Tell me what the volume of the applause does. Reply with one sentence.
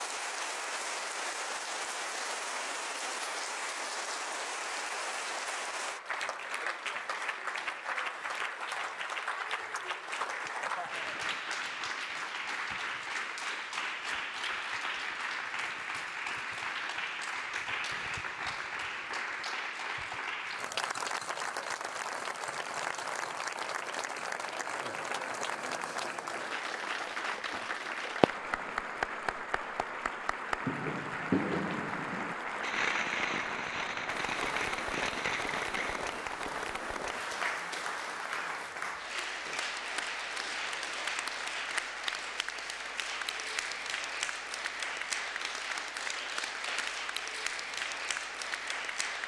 The volume of the applause stays about the same.